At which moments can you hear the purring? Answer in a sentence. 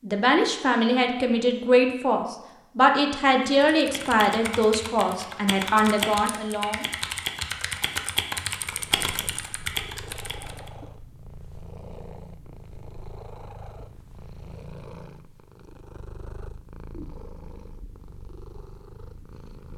You can hear the purring from 8.6 to 19.7 s.